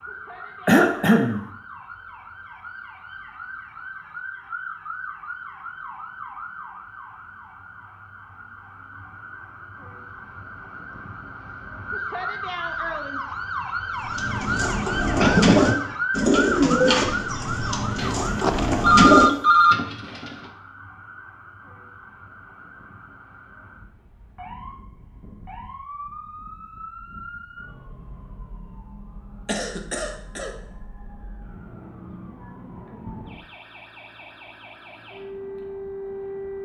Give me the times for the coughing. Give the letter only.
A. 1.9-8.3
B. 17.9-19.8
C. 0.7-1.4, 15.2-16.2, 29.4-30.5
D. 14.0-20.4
C.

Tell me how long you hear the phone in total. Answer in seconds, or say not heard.
2 s.